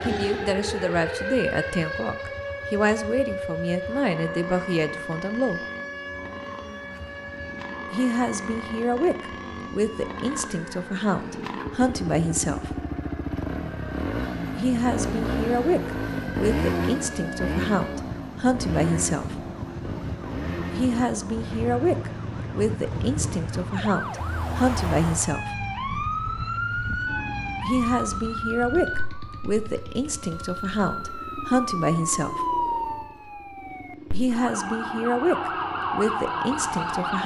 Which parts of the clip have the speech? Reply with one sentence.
You can hear the speech from 0.0 to 5.6 s, from 7.9 to 12.8 s, from 14.6 to 19.4 s, from 20.7 to 25.6 s, from 27.6 to 32.5 s and from 34.1 to 37.2 s.